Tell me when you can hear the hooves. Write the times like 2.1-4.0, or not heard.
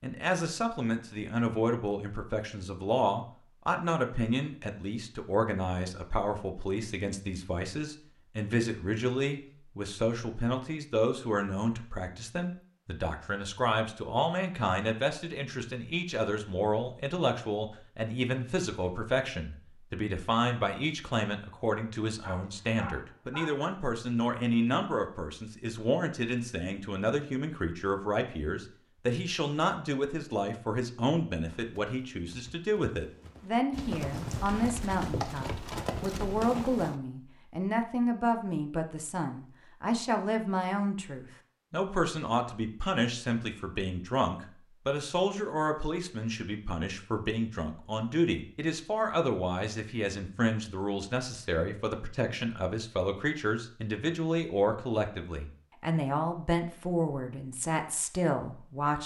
31.4-37.0.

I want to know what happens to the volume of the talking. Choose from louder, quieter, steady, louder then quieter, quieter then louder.
steady.